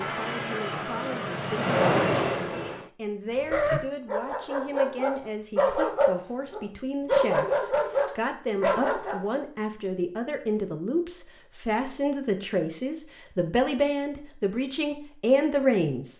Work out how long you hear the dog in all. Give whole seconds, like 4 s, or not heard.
6 s.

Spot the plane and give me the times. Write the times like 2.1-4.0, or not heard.
0.0-2.9.